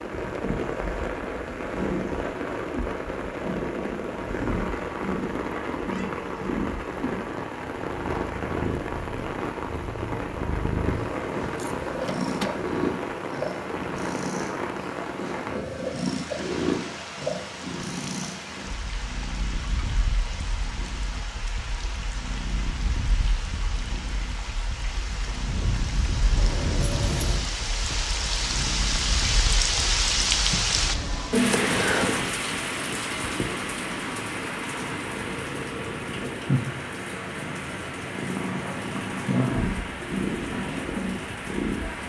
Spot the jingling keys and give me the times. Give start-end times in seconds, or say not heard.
11.6-12.6, 26.4-27.4.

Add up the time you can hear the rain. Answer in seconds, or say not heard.
42 s.